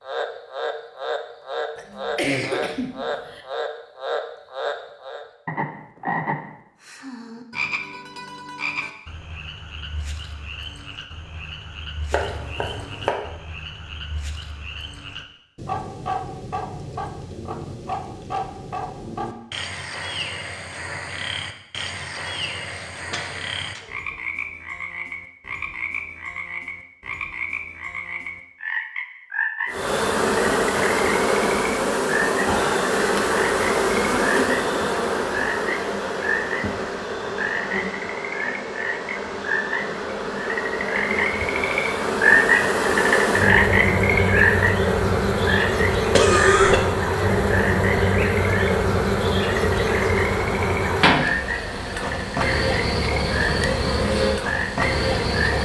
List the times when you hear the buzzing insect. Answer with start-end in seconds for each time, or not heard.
29.6-55.6.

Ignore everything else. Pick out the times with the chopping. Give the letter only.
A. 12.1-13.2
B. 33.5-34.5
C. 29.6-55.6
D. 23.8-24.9
A.